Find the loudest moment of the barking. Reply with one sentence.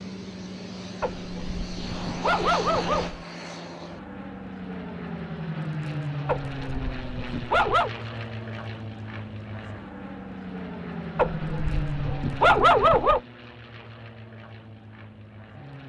The volume of the barking peaks at 13 seconds.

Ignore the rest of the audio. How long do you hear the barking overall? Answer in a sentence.
You can hear the barking for 6 seconds altogether.